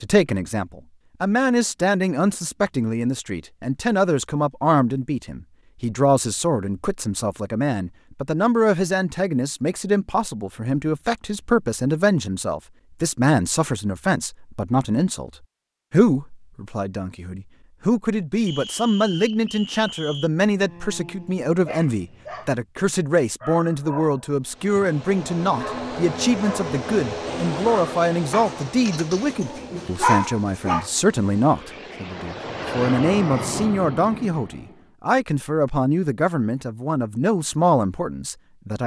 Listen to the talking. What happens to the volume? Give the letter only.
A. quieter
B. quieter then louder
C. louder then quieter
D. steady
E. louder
D.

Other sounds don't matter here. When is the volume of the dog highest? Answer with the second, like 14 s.
30 s.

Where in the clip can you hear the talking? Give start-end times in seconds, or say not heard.
0.0-15.3, 15.9-38.8.